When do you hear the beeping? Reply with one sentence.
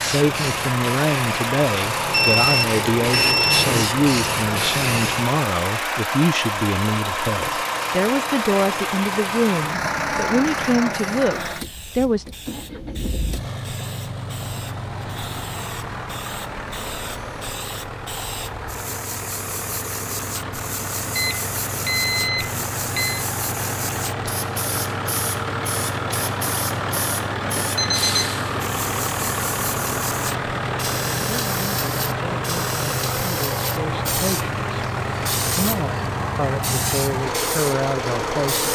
You can hear the beeping from 2.1 to 3.7 s, from 21.1 to 23.2 s and from 27.6 to 28.4 s.